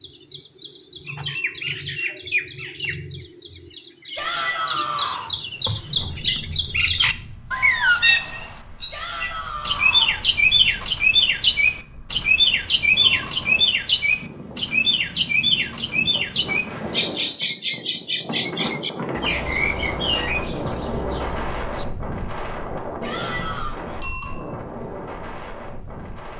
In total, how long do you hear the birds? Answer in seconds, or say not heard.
22 s.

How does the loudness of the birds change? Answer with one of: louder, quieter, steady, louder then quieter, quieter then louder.
louder then quieter.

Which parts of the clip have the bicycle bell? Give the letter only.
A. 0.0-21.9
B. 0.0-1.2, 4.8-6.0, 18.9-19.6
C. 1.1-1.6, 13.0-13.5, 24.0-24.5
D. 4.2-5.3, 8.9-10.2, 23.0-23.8
C.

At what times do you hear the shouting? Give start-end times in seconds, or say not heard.
4.2-5.3, 8.9-10.2, 23.0-23.8.